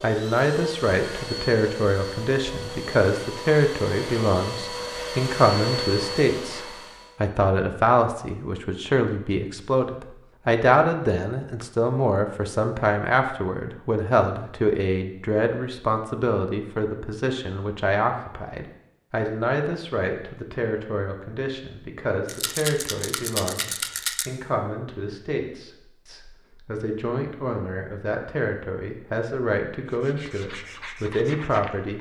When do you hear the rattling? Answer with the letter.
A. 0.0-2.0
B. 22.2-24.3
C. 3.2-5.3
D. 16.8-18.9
B.